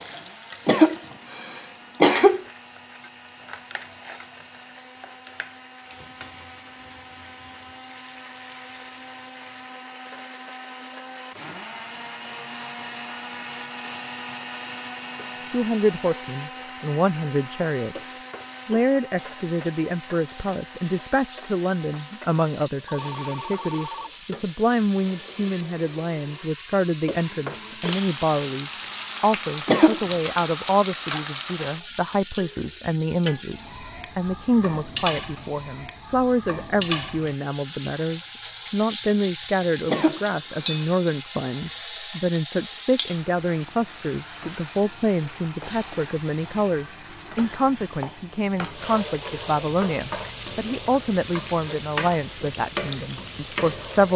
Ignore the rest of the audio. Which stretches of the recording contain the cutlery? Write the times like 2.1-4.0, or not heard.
not heard.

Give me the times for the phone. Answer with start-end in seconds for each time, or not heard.
22.9-24.1.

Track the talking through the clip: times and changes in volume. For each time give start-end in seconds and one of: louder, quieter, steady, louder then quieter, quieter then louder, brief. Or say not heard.
15.4-54.1 steady.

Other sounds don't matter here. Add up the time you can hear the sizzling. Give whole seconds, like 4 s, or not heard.
54 s.